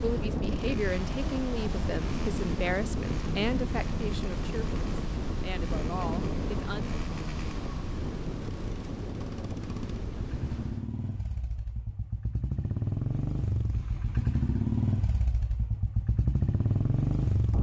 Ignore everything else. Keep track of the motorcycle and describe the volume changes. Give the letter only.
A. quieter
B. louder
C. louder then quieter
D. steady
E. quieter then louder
B.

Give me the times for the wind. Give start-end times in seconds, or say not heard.
0.0-10.9.